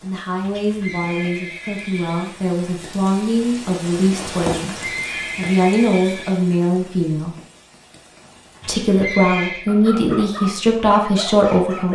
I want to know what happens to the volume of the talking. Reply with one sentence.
The loudness of the talking goes up.